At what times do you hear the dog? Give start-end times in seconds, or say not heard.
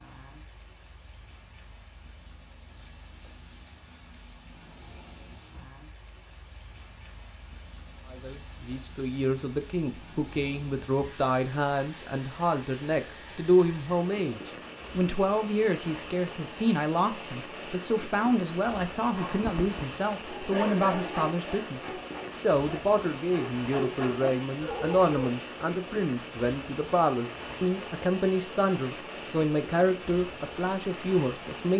19.1-25.1.